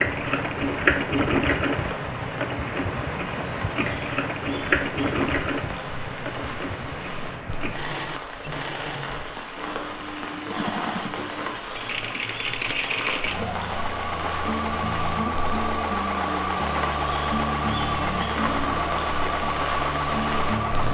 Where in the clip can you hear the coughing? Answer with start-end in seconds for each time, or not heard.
not heard.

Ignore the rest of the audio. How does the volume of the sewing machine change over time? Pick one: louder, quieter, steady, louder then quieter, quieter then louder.
quieter then louder.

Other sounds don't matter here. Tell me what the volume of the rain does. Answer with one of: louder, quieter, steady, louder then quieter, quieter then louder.
louder.